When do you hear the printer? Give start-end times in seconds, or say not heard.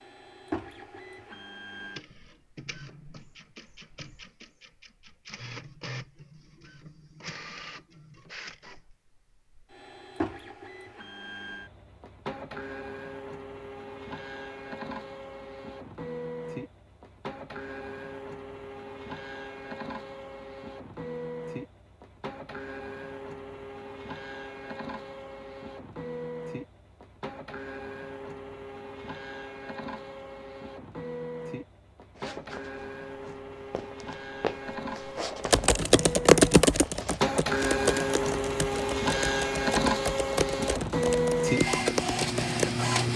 0.0-43.1.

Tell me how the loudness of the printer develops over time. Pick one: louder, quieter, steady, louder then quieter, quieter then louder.
louder.